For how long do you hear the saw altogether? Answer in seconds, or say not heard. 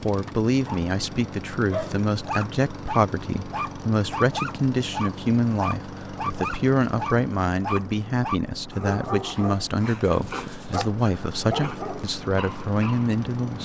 not heard.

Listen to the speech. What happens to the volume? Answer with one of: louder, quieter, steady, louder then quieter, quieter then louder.
steady.